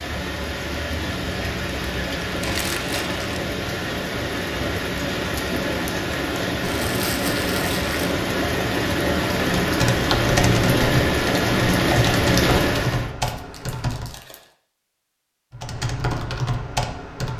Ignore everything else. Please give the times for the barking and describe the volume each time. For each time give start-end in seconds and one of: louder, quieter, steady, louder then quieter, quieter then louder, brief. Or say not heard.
not heard.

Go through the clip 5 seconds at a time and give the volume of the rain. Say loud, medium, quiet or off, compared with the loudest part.
medium, loud, loud, off.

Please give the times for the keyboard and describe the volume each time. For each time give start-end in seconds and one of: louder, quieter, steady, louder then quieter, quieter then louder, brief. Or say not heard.
9.6-14.2 quieter
15.5-17.3 brief.